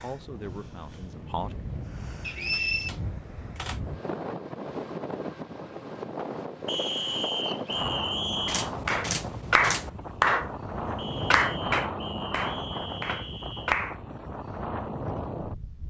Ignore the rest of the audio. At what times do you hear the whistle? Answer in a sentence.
The whistle can be heard from 2.2 to 2.9 s, from 6.7 to 8.7 s and from 10.9 to 13.8 s.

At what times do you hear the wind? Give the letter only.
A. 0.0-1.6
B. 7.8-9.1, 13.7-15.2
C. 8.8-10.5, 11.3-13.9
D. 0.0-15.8
D.